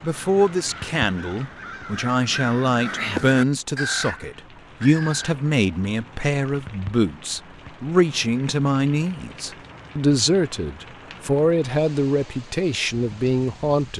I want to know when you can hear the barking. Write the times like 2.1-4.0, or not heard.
not heard.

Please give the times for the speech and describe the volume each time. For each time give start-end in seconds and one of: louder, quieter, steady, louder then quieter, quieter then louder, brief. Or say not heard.
0.0-13.9 steady.